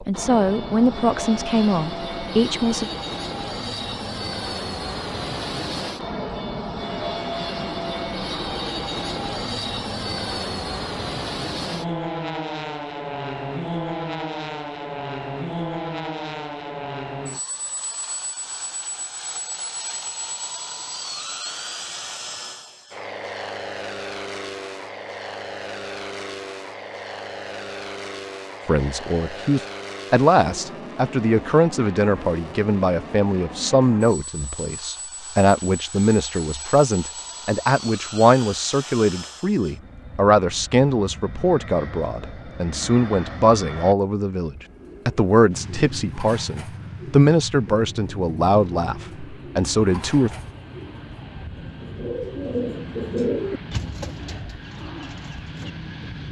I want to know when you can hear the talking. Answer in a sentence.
The talking can be heard from 0.0 to 2.9 s and from 28.6 to 50.3 s.